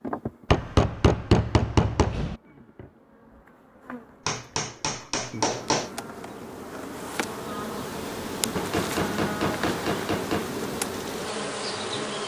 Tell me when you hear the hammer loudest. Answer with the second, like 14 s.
1 s.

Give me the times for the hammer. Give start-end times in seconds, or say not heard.
0.5-2.4, 4.2-5.9, 8.6-10.5.